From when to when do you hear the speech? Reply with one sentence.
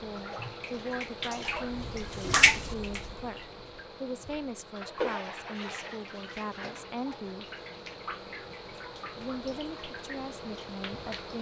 You can hear the speech from 0.0 to 7.5 s and from 9.2 to 11.3 s.